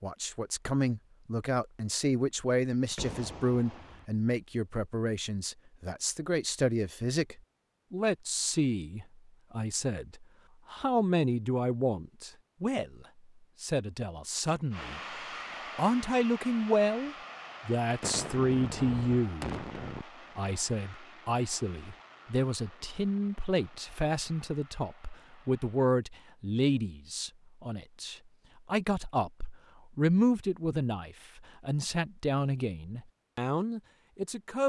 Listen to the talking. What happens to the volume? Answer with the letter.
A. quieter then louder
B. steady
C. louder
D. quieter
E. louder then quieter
B.